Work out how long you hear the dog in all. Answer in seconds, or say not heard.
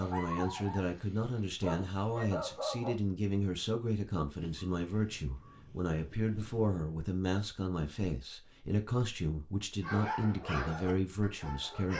5 s.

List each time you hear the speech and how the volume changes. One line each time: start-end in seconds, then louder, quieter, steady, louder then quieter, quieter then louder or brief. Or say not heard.
0.0-11.9 steady.